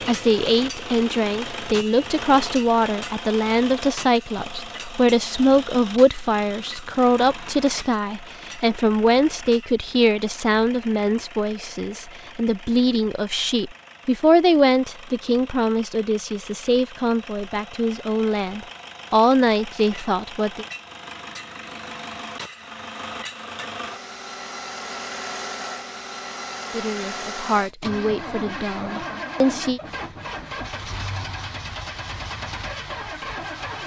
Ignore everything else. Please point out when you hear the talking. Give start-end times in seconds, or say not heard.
0.1-20.6, 26.7-29.8.